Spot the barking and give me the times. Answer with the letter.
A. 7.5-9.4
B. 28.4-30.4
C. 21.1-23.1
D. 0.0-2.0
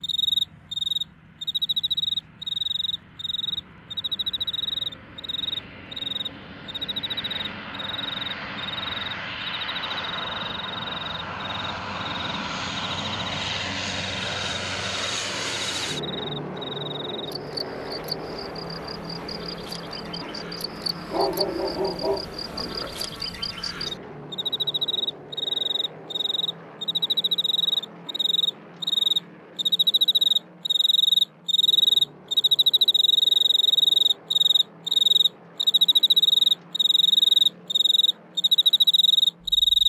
C.